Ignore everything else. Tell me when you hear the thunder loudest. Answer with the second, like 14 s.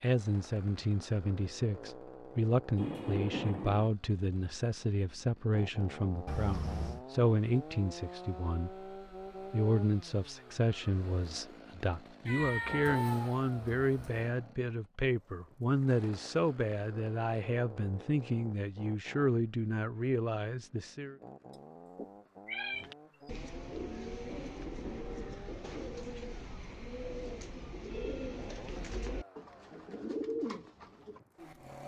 3 s.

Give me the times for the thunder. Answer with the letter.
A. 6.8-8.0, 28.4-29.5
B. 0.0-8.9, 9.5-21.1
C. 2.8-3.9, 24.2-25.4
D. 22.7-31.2
C.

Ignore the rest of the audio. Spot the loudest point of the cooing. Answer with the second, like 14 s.
30 s.